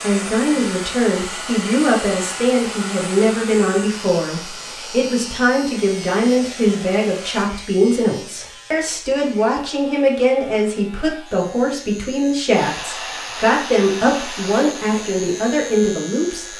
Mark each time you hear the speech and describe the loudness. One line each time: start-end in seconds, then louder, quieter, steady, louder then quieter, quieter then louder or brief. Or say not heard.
0.0-16.5 steady.